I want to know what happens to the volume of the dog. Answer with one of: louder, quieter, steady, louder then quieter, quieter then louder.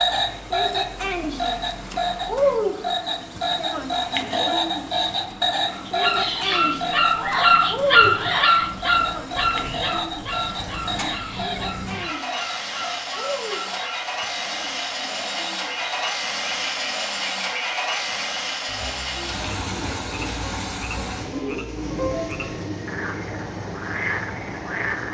quieter.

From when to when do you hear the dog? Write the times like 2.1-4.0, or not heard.
5.7-14.1.